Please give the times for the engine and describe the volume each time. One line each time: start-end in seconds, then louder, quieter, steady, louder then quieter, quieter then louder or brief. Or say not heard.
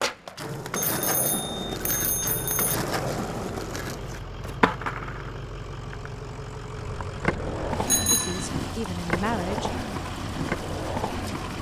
1.6-11.5 steady.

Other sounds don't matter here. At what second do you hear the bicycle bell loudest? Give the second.
8 s.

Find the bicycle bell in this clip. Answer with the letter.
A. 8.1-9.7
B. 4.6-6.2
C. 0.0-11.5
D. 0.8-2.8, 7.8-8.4
D.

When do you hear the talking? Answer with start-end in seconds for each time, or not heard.
8.1-9.7.